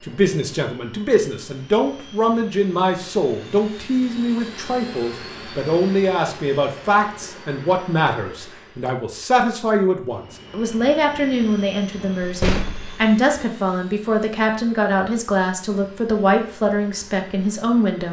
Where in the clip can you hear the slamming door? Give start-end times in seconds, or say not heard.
12.2-13.0.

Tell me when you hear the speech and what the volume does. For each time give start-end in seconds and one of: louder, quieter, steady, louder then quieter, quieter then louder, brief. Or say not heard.
0.0-18.0 steady.